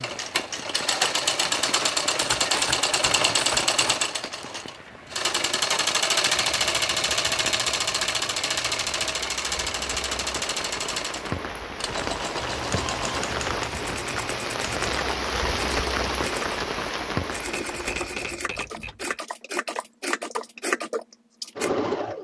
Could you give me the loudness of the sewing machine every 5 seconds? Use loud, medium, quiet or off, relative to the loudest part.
loud, loud, medium, medium, loud.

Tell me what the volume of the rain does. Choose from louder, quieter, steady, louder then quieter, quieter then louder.
louder.